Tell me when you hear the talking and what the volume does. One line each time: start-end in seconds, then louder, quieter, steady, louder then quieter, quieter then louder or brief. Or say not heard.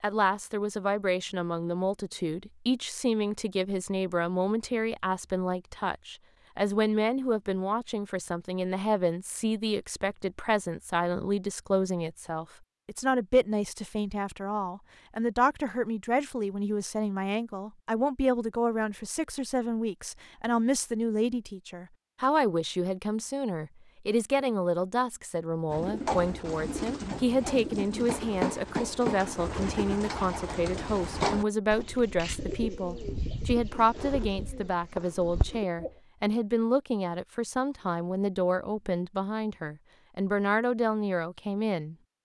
0.0-42.0 steady.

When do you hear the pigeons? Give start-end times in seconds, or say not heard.
25.7-35.9.